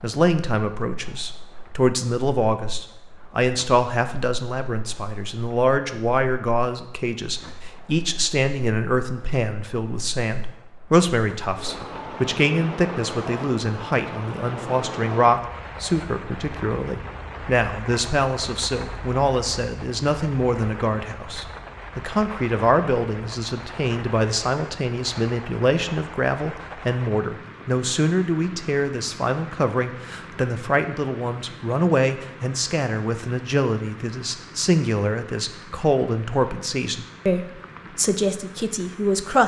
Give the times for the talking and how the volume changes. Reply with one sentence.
The talking can be heard from 0.0 to 39.4 s, at a steady volume.